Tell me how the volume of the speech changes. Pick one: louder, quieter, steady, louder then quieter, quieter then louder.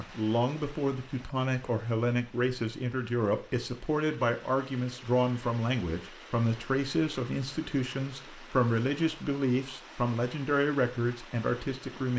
steady.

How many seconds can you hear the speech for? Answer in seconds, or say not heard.
12 s.